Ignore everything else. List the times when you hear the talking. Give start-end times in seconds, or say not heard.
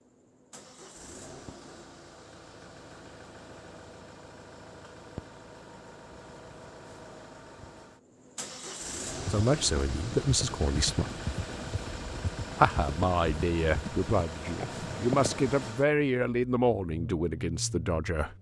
9.3-11.1, 12.6-18.3.